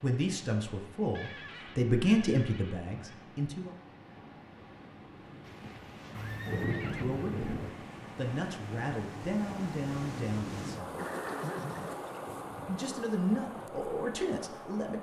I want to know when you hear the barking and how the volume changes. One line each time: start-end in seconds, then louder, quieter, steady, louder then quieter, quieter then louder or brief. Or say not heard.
not heard.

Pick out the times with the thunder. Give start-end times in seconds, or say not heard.
6.2-7.7.